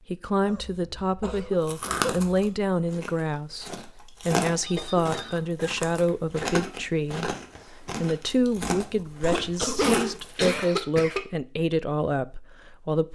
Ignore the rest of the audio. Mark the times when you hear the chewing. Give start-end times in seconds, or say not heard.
1.6-10.7.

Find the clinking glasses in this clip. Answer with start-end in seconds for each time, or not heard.
not heard.